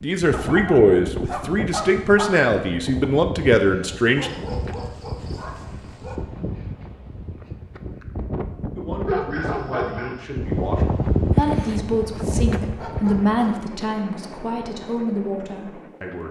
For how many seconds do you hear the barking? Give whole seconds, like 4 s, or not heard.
6 s.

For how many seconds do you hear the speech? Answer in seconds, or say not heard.
12 s.